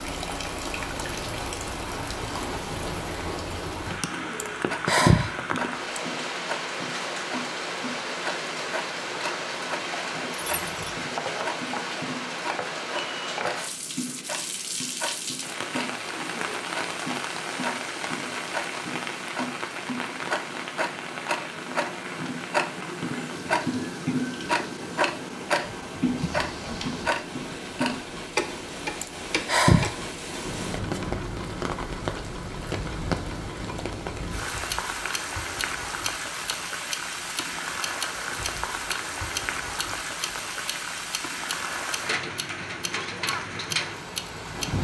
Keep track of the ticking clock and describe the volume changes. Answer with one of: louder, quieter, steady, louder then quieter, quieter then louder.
louder then quieter.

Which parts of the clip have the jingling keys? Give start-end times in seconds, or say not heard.
10.3-11.1, 26.1-27.1.